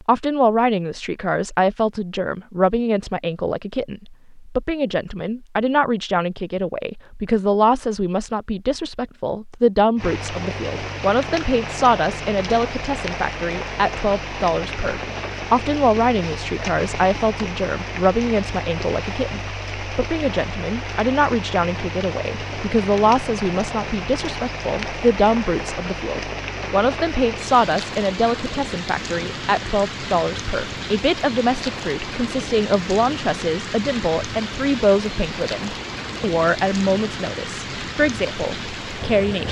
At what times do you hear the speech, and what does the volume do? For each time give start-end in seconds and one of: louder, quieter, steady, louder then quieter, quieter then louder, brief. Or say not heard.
0.0-39.4 steady.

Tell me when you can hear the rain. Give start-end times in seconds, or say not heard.
9.9-39.4.